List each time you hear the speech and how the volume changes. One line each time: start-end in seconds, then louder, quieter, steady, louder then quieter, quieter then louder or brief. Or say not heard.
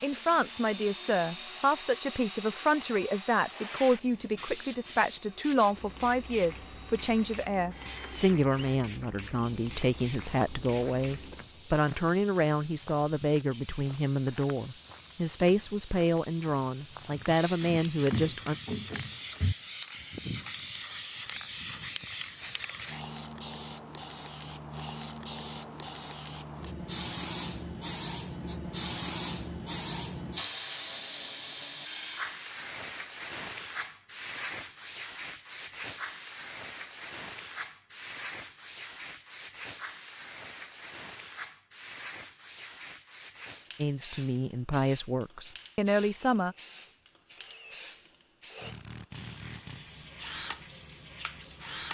0.0-18.6 steady
43.8-46.5 brief.